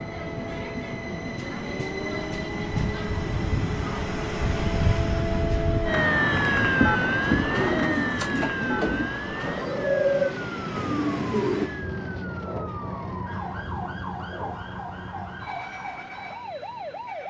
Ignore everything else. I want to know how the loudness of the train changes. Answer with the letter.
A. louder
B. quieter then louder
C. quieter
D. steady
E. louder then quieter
C.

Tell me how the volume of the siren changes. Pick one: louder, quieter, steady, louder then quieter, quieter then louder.
louder then quieter.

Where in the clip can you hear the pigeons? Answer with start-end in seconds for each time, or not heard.
6.6-11.7.